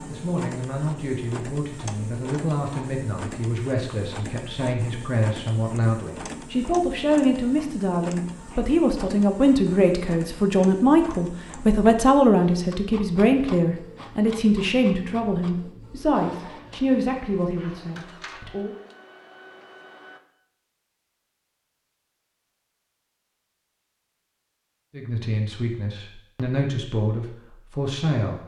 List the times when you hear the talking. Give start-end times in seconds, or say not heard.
0.0-18.8, 24.9-28.4.